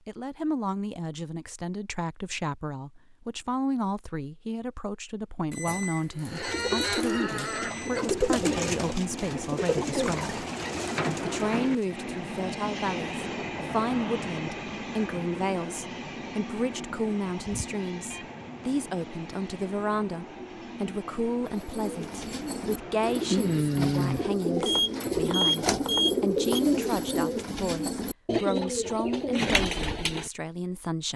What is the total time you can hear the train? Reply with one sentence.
You can hear the train for 17 seconds altogether.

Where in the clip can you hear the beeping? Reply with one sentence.
The beeping can be heard from 5.5 to 8.1 s, from 17.4 to 18.2 s and from 24.6 to 26.6 s.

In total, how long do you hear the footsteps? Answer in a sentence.
The footsteps can't be heard in this clip.